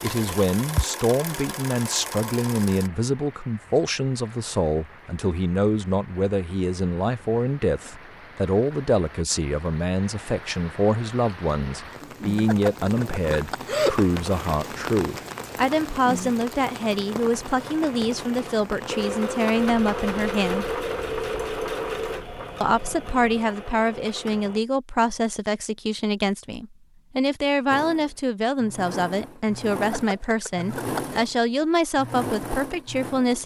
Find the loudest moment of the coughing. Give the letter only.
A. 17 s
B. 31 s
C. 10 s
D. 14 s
D.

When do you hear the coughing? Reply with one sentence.
You can hear the coughing from 12.3 to 14.1 s and from 29.8 to 31.2 s.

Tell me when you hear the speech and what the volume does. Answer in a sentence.
The speech can be heard from 0.0 to 20.8 s, at a steady volume; and from 22.6 to 33.4 s, at a steady volume.